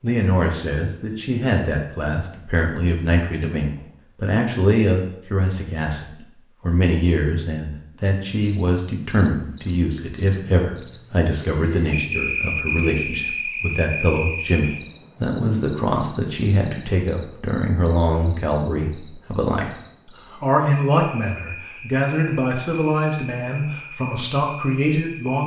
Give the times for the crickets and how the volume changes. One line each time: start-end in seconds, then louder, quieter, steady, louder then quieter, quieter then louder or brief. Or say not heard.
8.0-25.4 quieter.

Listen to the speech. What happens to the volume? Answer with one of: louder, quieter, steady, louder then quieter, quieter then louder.
steady.